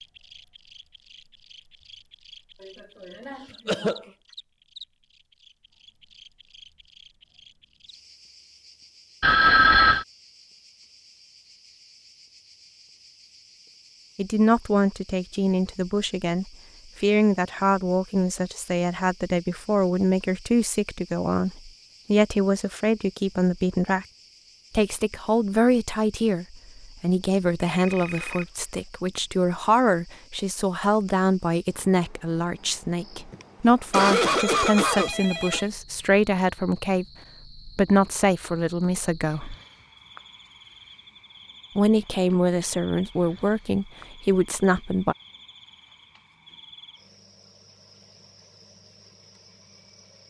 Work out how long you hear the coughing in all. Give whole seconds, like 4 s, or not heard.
4 s.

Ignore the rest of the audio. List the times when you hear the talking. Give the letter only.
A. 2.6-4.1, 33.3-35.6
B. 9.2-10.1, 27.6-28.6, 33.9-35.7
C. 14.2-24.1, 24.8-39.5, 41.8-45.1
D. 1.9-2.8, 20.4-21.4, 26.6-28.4
C.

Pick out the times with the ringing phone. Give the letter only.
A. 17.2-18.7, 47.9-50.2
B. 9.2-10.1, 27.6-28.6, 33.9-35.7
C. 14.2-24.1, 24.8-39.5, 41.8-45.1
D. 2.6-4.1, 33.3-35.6
B.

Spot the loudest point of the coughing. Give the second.
34 s.